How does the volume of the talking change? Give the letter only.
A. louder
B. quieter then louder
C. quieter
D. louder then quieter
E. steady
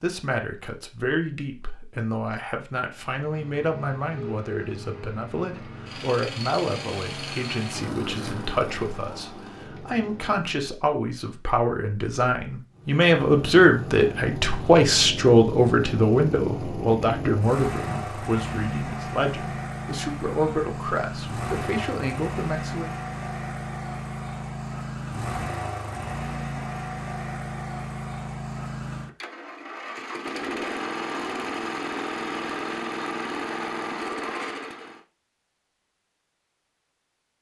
D.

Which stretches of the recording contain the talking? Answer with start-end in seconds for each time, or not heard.
0.0-22.9.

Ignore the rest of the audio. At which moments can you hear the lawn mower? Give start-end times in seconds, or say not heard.
2.9-10.7, 12.7-35.0.